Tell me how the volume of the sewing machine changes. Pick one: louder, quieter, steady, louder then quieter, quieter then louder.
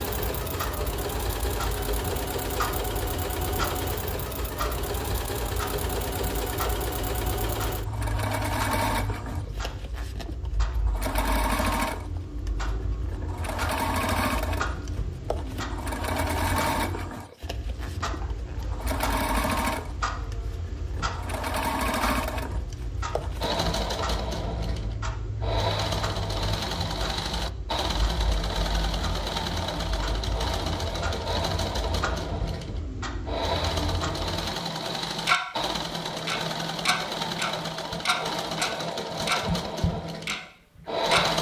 steady.